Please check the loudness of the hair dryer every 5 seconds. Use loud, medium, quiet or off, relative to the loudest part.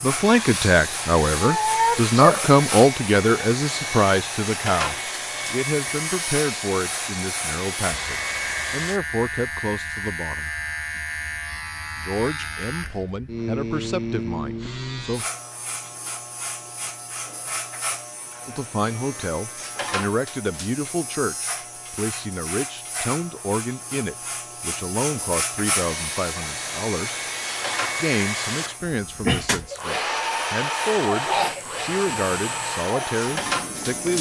loud, loud, off, off, off, loud, loud.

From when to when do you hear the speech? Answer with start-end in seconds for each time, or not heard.
0.0-10.5, 11.9-15.2, 18.4-27.2, 28.0-34.1.